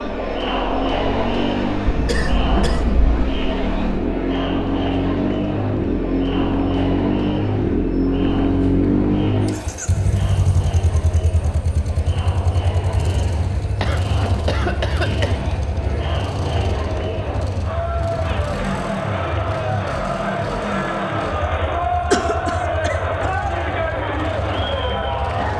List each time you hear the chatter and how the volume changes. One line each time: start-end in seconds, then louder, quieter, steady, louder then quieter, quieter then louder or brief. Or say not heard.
0.0-25.5 quieter then louder.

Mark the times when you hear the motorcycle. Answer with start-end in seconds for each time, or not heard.
0.0-25.5.